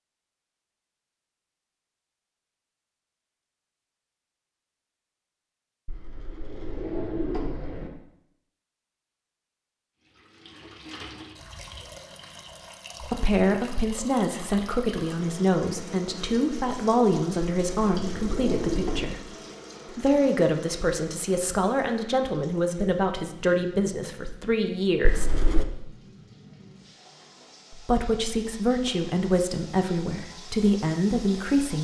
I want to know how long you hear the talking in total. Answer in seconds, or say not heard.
16 s.